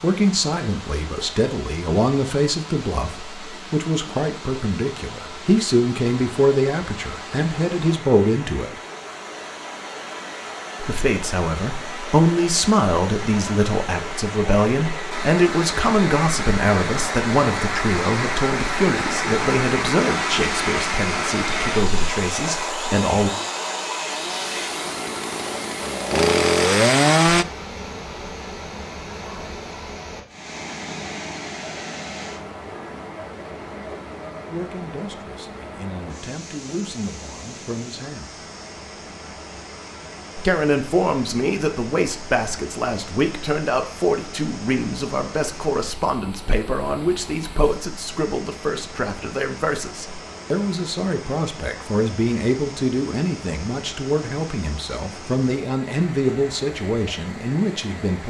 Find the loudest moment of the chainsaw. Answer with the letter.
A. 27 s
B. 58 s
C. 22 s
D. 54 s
A.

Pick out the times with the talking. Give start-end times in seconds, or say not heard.
0.0-8.7, 10.8-23.3, 34.5-38.4, 40.4-58.2.